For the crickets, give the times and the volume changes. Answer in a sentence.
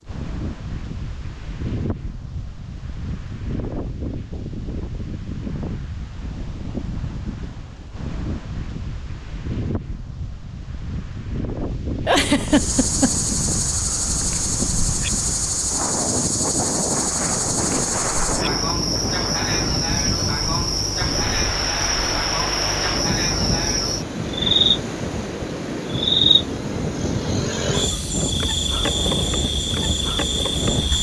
You can hear the crickets from 12.4 to 30.9 s, at a steady volume.